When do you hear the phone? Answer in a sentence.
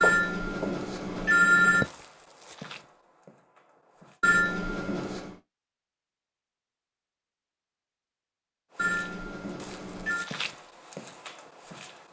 The phone can be heard from 0.0 to 1.9 s, from 4.2 to 5.3 s and from 8.8 to 10.3 s.